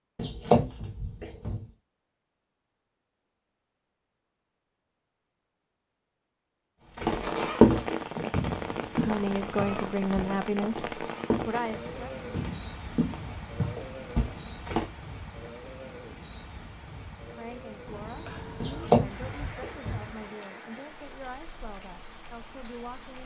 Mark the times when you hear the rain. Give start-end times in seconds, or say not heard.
7.0-23.2.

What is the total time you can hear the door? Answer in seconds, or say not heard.
3 s.